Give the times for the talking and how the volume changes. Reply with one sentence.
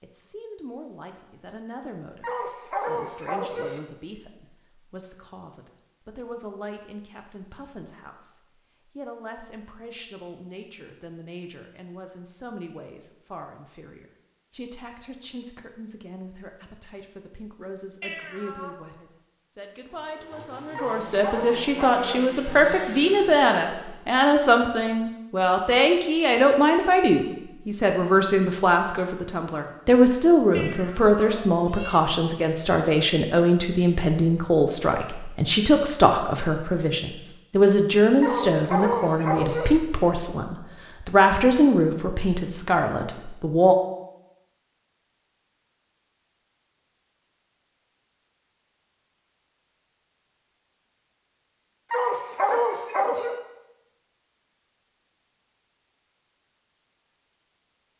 You can hear the talking from 0.0 to 43.8 s, getting louder.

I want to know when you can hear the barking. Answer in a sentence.
You can hear the barking from 2.2 to 3.8 s, from 20.8 to 22.3 s, from 38.2 to 39.8 s and from 51.9 to 53.4 s.